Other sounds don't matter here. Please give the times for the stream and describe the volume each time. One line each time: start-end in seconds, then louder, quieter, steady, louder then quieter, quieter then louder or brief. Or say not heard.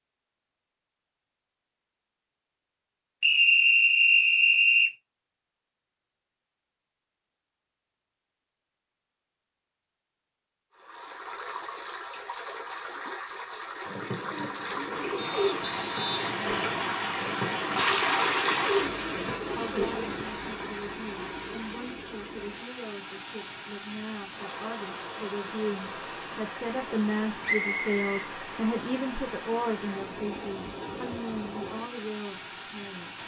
10.7-33.2 louder then quieter.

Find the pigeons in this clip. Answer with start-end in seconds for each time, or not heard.
13.8-20.2.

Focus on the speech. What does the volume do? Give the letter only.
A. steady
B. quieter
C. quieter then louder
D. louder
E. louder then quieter
E.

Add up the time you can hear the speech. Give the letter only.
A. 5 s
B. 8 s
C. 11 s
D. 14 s
D.